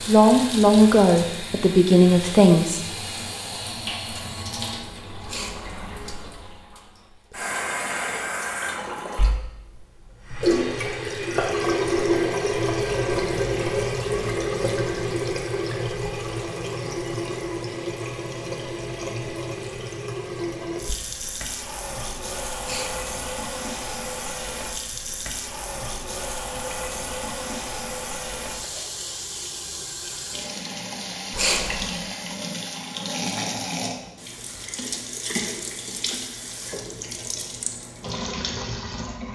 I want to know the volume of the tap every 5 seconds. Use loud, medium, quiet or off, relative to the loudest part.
medium, medium, loud, medium, medium, medium, medium, medium.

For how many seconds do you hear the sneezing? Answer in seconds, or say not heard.
2 s.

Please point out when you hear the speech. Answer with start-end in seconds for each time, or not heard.
0.1-2.9.